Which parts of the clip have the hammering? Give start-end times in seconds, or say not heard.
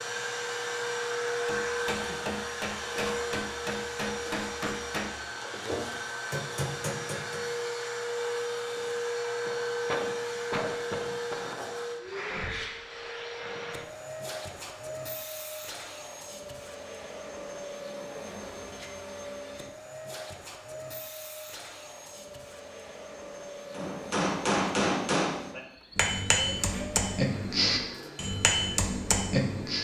1.4-7.4, 23.8-29.8.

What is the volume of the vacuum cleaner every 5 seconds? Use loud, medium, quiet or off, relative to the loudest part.
loud, loud, loud, medium, medium, medium.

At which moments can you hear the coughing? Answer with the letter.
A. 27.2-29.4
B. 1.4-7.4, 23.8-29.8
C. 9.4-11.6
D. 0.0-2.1
C.